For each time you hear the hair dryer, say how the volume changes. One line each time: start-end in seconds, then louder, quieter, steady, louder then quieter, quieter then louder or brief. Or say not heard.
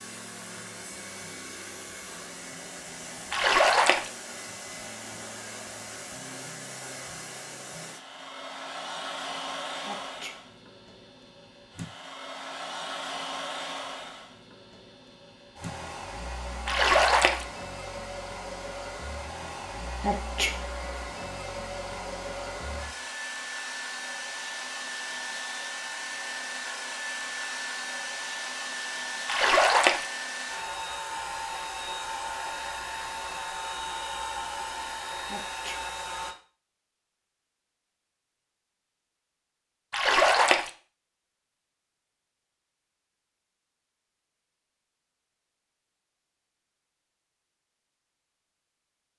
0.0-36.4 louder.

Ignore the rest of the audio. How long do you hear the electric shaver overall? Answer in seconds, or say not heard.
not heard.